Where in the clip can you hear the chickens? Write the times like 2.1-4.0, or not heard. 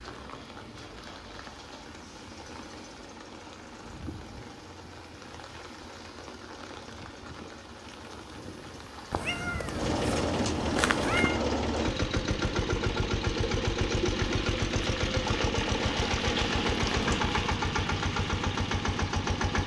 not heard.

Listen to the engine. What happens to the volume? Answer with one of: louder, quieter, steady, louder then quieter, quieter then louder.
louder.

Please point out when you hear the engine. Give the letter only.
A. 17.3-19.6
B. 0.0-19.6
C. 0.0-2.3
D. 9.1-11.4
B.